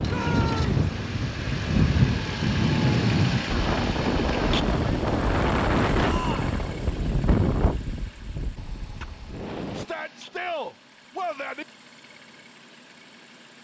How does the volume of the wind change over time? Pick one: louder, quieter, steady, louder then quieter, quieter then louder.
quieter.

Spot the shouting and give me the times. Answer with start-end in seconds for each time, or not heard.
0.1-0.8, 6.0-6.6, 9.8-11.7.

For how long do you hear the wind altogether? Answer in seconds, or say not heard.
10 s.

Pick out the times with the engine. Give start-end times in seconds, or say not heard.
0.0-13.6.